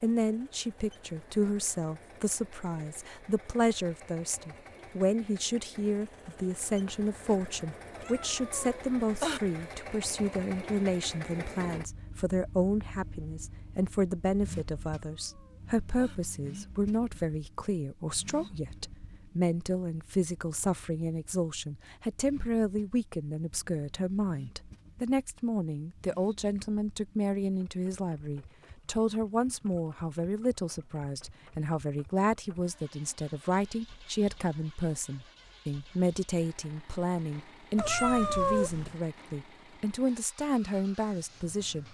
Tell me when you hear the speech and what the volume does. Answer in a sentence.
You can hear the speech from 0.0 to 41.9 s, at a steady volume.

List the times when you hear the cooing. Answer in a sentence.
You can't hear the cooing here.